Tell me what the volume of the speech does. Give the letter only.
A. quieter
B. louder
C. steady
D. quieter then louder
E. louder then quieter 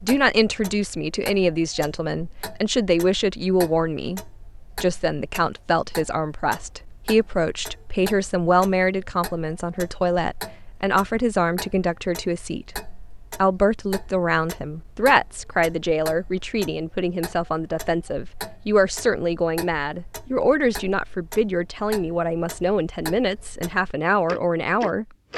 C.